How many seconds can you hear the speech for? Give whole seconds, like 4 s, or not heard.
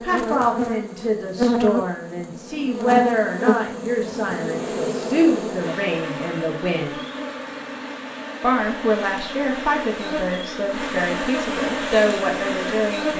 12 s.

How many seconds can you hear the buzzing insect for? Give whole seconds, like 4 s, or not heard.
13 s.